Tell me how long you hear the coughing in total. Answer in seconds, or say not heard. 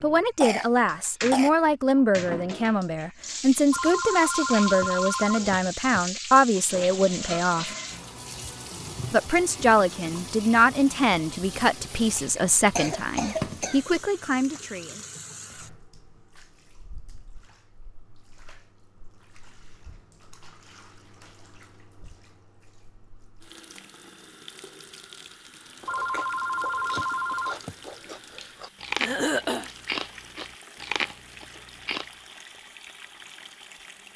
4 s.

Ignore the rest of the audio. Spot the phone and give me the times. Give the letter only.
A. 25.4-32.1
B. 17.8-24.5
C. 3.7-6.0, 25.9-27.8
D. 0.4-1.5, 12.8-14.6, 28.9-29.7
C.